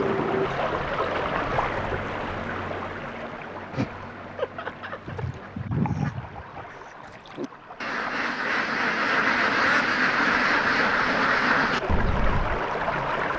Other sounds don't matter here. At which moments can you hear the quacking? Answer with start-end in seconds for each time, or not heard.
5.0-12.6.